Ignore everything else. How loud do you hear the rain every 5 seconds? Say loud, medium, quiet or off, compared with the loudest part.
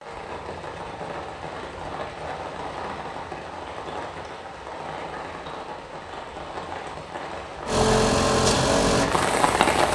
medium, loud.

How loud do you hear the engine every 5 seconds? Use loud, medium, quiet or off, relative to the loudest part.
off, loud.